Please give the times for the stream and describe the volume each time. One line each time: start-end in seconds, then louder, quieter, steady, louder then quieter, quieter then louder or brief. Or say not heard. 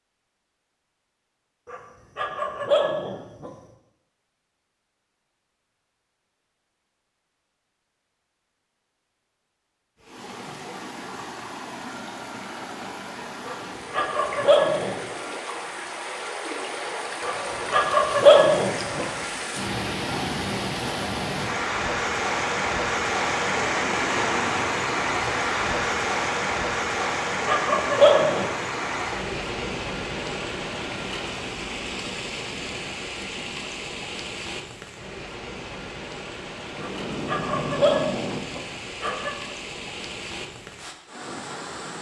10.0-41.9 louder then quieter.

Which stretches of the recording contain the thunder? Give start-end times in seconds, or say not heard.
36.7-38.4.